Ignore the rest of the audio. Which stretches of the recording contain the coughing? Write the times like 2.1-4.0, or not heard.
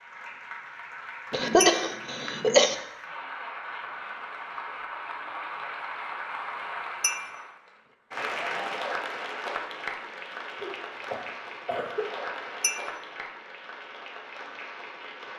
1.3-2.8, 10.6-12.1.